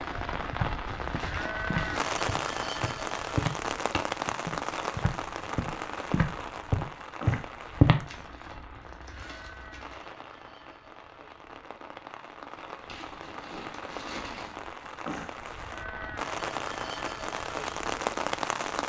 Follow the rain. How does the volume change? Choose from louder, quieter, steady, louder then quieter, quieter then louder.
quieter then louder.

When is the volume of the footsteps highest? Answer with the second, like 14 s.
8 s.